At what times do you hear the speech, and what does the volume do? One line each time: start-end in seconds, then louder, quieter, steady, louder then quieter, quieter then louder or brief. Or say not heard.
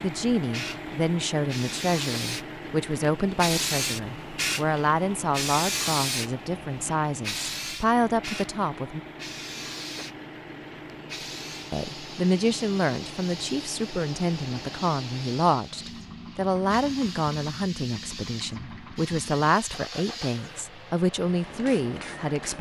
0.0-9.0 steady
11.7-22.5 steady.